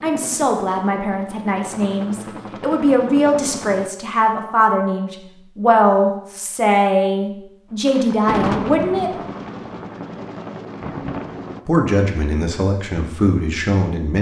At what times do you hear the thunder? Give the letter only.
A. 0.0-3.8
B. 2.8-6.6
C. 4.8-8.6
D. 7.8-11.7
D.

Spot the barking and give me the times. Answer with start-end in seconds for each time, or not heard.
not heard.